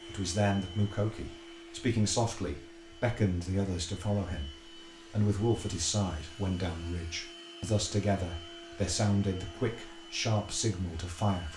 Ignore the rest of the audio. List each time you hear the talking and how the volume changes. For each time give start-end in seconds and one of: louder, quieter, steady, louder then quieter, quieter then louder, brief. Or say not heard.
0.0-11.5 steady.